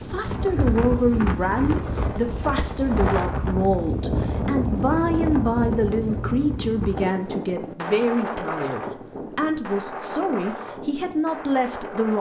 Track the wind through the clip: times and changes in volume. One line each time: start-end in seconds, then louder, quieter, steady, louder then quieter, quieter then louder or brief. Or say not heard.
0.0-12.1 quieter.